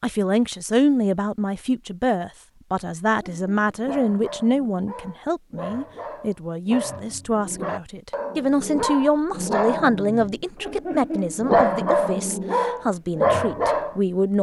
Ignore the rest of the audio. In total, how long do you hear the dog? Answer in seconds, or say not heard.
11 s.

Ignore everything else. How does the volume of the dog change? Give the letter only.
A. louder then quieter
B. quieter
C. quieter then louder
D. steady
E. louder
E.